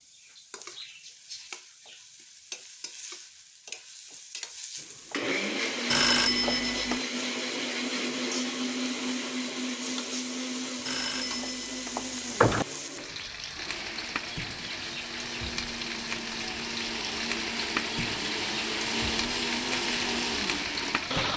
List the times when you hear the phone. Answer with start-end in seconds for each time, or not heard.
5.9-7.0, 10.8-12.7.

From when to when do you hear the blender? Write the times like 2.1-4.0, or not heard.
4.8-21.3.